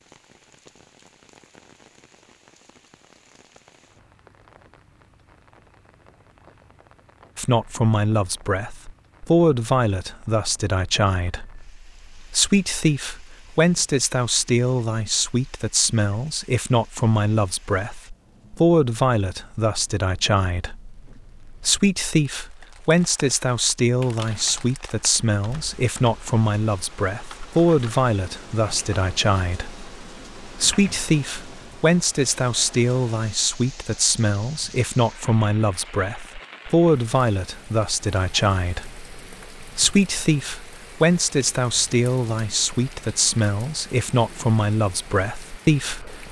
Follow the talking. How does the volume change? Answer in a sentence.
The volume of the talking stays about the same.